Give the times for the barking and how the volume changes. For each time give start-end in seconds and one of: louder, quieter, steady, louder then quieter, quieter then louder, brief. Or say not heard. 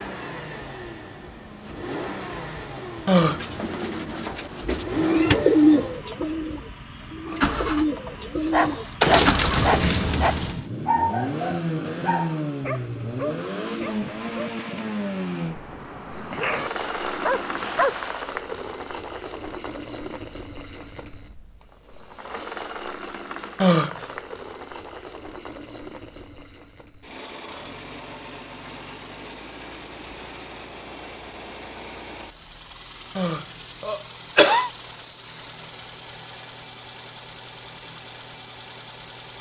8.4-18.3 quieter then louder.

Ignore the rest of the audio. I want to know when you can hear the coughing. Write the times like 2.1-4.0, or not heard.
3.0-3.5, 23.6-24.1, 33.1-34.7.